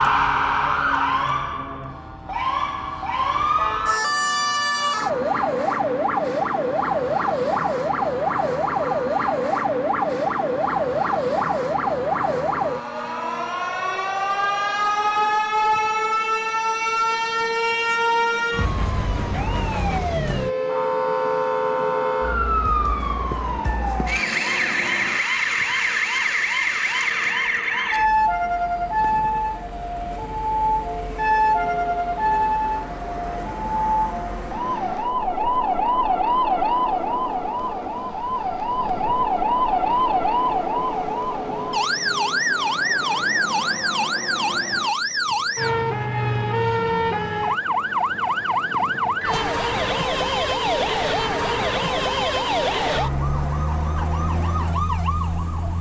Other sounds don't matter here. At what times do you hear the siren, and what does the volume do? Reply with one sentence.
The siren can be heard from 0.0 to 55.7 s, at a steady volume.